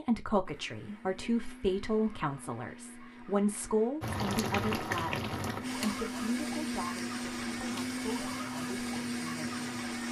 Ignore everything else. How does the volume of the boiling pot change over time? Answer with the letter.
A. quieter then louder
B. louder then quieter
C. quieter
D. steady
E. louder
C.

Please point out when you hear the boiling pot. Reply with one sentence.
You can hear the boiling pot from 4.0 to 10.0 s.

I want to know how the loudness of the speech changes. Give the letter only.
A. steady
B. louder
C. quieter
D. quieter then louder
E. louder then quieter
C.